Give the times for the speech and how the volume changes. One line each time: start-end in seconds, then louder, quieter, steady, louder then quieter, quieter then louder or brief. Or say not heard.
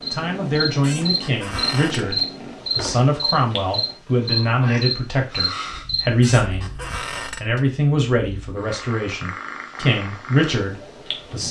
0.1-11.4 steady.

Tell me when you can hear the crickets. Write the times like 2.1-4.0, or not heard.
0.0-6.0.